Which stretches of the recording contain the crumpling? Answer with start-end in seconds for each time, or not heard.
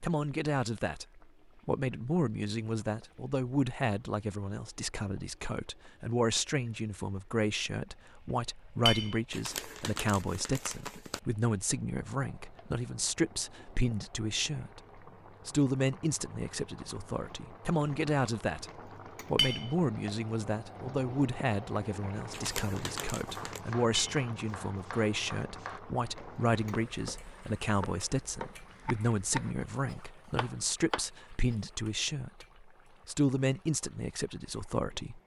9.3-11.2, 22.3-23.6.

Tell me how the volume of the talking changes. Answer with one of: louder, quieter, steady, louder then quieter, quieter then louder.
steady.